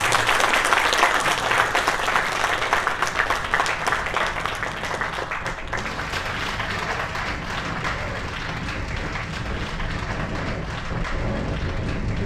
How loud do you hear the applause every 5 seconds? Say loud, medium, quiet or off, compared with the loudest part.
loud, medium, quiet.